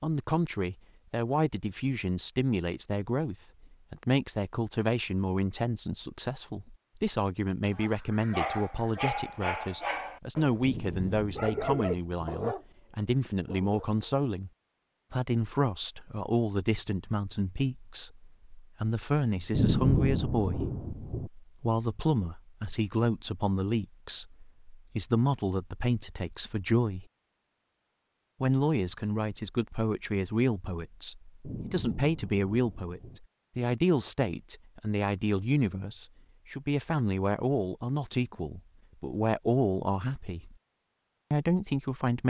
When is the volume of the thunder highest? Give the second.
20 s.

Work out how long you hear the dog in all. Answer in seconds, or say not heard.
6 s.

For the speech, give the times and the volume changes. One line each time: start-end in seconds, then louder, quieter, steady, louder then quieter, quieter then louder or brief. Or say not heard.
0.0-14.5 steady
15.1-27.1 steady
28.4-40.5 steady
41.3-42.2 brief.